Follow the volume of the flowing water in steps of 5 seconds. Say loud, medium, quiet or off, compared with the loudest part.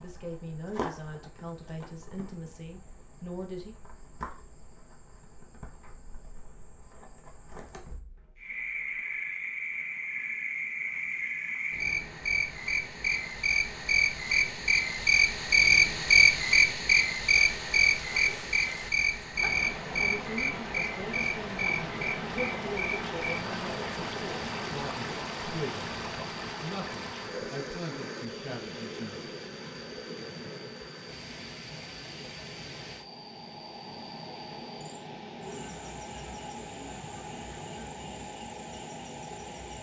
off, off, off, medium, loud, loud, medium, medium.